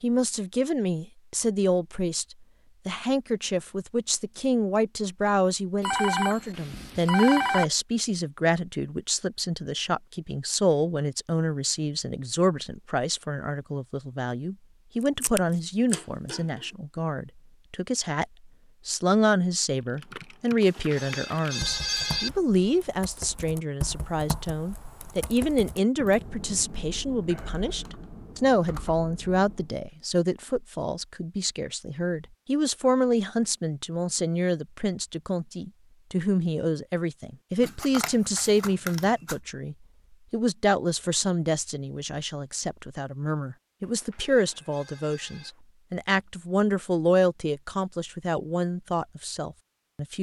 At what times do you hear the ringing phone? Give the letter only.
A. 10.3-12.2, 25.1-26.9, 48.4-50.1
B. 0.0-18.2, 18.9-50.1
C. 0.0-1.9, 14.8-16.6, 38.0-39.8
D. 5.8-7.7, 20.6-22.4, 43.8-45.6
D.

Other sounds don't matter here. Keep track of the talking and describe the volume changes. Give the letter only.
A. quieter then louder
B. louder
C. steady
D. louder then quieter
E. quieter
C.